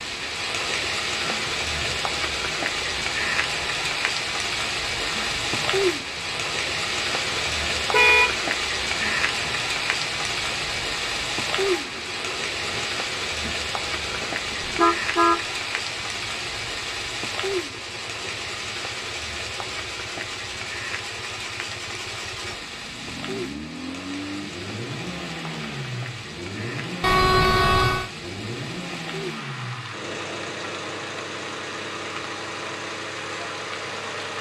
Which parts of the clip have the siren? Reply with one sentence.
You can't hear the siren here.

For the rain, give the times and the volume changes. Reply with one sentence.
The rain can be heard from 0.0 to 34.3 s, getting quieter.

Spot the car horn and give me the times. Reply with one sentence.
You can hear the car horn from 7.9 to 8.4 s, from 14.6 to 15.4 s and from 27.0 to 28.1 s.